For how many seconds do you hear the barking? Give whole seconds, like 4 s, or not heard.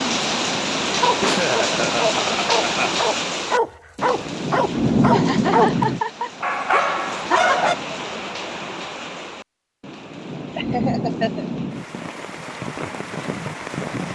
7 s.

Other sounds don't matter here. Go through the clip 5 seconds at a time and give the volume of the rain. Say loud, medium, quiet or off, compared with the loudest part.
loud, loud, medium.